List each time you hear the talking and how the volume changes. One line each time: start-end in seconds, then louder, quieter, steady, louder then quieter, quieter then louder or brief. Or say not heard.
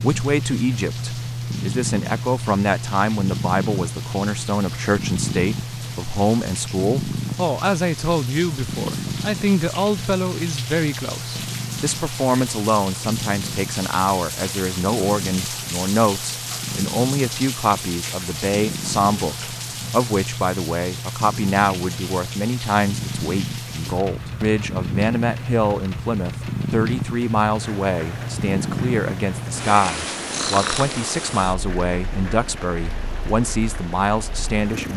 0.0-34.9 steady.